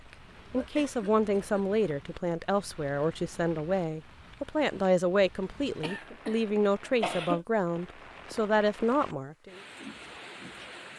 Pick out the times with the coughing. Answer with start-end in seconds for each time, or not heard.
0.6-1.6, 5.5-7.4.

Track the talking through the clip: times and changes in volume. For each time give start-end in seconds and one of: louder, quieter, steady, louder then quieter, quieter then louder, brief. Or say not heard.
0.5-9.6 steady.